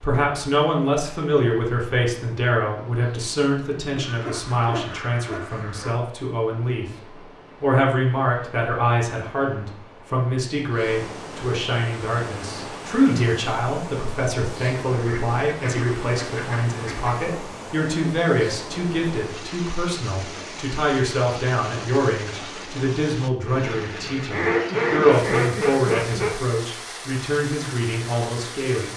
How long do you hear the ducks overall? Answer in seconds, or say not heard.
6 s.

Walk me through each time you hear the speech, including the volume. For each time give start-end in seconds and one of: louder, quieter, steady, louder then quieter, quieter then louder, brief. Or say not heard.
0.0-6.8 quieter
7.6-28.9 steady.